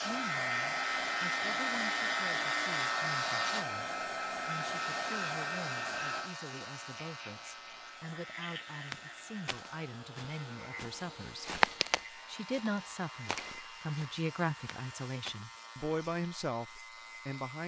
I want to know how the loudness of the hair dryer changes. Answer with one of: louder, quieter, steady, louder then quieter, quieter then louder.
quieter.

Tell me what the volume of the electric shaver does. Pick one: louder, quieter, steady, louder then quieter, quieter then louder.
quieter.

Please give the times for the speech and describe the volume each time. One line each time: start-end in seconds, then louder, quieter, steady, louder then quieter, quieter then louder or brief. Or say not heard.
0.0-17.6 louder.